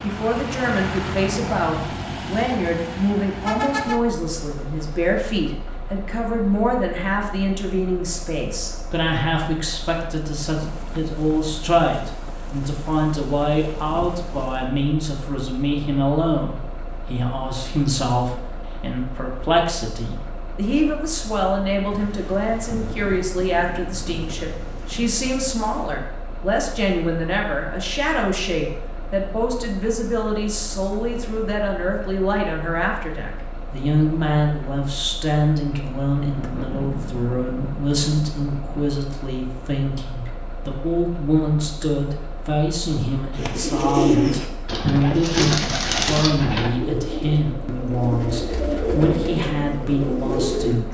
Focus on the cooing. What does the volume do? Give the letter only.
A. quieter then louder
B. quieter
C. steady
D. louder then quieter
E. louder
B.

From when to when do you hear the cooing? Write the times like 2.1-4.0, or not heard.
43.4-50.8.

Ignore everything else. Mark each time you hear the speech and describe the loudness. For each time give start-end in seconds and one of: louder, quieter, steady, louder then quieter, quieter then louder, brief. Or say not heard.
0.0-50.8 steady.